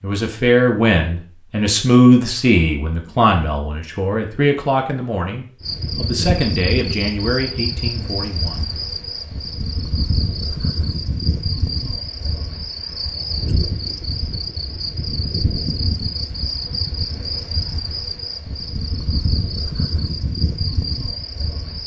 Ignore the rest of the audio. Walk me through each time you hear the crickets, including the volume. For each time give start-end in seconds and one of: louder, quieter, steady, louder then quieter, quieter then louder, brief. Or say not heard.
5.6-21.8 steady.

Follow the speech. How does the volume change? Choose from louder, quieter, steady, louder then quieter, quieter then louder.
quieter.